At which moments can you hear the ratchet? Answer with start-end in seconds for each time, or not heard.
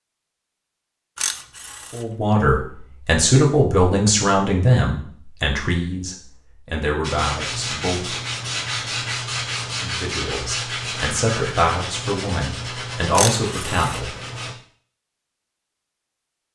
1.1-2.0, 13.2-14.0.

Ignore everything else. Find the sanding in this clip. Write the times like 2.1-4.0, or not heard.
7.0-14.6.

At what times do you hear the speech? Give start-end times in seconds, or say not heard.
1.9-8.2, 9.8-14.1.